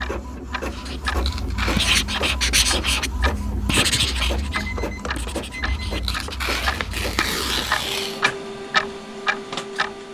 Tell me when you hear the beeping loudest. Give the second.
5 s.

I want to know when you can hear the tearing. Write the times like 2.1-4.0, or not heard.
1.1-2.0, 5.8-8.2.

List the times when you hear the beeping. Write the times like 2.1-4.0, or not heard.
4.5-6.3.